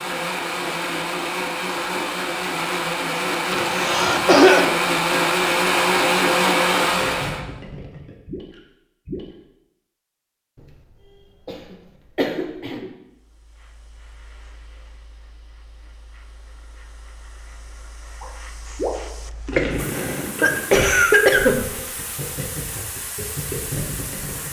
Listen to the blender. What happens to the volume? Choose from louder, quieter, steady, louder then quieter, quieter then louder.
louder.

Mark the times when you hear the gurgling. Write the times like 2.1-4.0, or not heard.
6.8-9.3, 18.2-24.4.